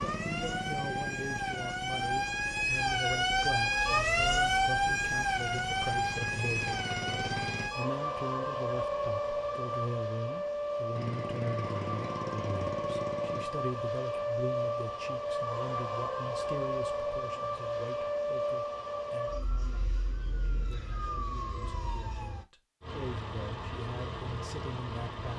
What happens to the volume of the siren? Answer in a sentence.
The loudness of the siren goes down.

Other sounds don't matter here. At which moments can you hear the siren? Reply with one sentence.
The siren can be heard from 0.0 to 22.4 s.